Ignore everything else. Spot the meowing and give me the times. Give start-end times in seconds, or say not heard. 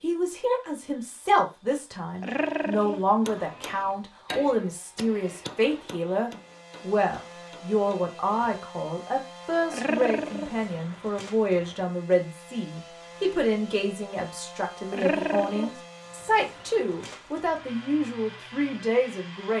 2.2-3.9, 9.7-10.5, 14.9-15.7.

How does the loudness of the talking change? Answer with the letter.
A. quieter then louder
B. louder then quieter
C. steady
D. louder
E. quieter
C.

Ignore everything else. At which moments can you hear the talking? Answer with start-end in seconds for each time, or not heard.
0.0-19.5.